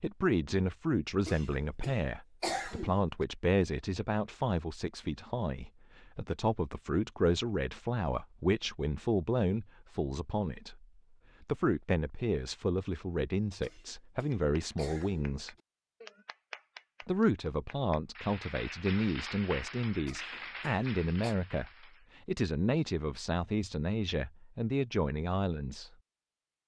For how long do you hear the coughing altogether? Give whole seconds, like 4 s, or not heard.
5 s.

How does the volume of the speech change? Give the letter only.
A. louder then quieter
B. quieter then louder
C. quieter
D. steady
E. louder
D.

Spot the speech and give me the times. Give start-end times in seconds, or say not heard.
0.0-15.6, 17.1-21.6, 22.2-25.9.